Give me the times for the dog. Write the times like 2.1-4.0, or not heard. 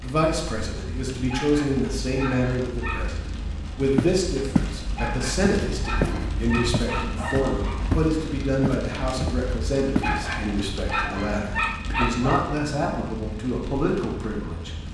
1.2-3.1, 5.0-7.8, 10.0-12.4.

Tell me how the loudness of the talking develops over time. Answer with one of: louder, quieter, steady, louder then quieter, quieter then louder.
steady.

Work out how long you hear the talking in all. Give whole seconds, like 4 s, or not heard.
15 s.